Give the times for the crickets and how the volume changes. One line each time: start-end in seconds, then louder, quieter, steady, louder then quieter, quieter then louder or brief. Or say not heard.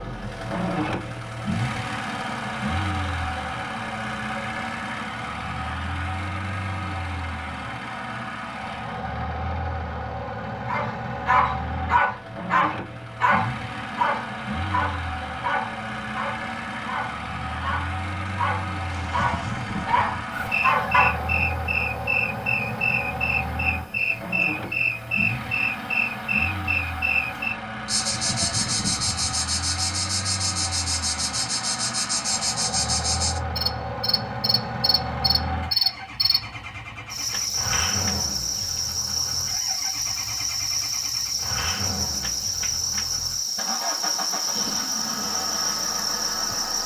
20.3-46.8 steady.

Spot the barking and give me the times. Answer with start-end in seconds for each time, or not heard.
10.7-21.2.